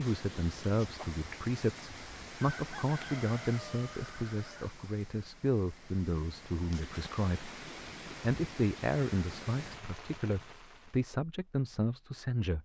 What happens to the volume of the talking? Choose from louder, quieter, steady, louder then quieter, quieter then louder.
steady.